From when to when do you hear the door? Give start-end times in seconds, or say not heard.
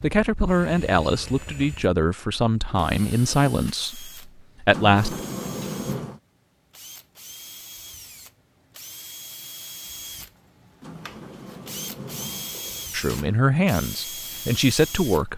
4.7-6.2, 10.8-13.4.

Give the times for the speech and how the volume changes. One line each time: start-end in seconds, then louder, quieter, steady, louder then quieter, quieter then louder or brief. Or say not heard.
0.0-5.2 steady
12.9-15.3 brief.